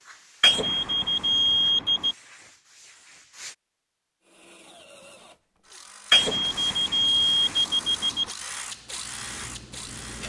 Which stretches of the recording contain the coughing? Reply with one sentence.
You can't hear the coughing here.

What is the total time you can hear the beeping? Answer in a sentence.
You can hear the beeping for 4 seconds altogether.